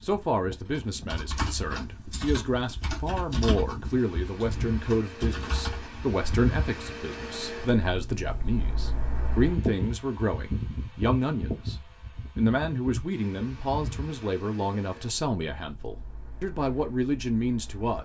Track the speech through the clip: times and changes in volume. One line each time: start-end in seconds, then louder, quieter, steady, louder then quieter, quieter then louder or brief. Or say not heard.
0.0-18.0 steady.